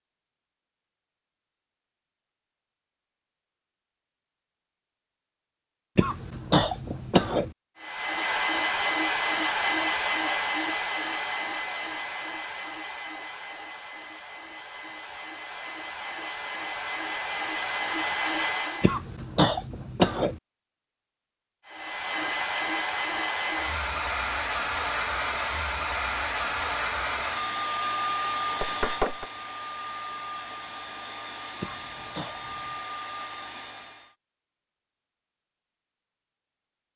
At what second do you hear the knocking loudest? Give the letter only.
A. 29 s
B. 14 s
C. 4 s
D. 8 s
A.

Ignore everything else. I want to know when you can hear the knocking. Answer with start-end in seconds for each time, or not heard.
6.6-7.3, 28.6-29.2.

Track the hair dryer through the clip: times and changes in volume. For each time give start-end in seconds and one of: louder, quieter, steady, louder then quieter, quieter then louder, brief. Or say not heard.
7.8-19.0 quieter then louder
21.6-34.1 quieter.